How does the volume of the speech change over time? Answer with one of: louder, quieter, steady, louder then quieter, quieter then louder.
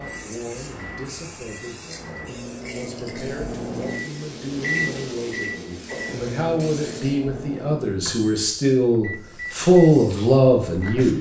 louder.